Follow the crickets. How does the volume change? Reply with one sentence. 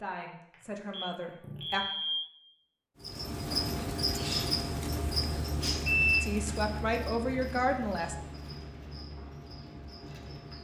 The volume of the crickets goes down.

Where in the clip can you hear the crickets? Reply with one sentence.
You can hear the crickets from 3.0 to 10.5 s.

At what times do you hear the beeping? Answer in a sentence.
The beeping can be heard from 0.5 to 2.2 s and from 5.8 to 6.7 s.